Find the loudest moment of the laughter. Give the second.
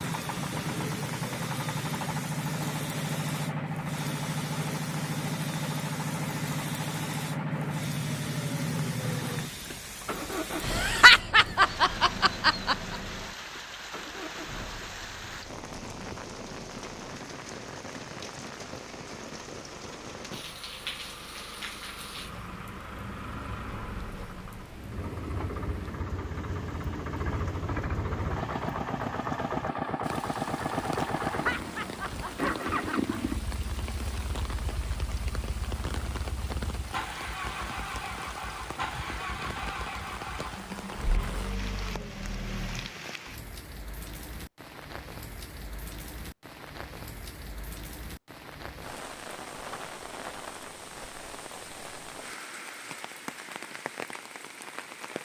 11 s.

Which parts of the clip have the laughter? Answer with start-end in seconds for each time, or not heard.
10.7-12.9, 31.3-33.1.